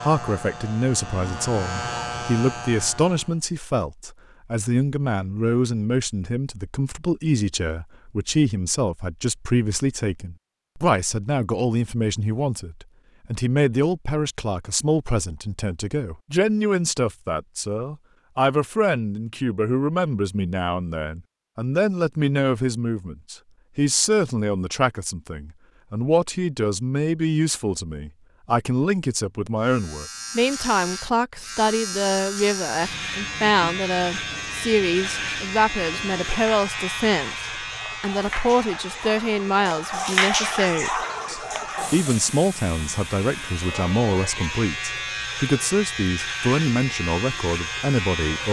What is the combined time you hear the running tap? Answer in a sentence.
The running tap can be heard for 16 seconds in total.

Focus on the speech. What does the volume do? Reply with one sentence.
The volume of the speech stays about the same.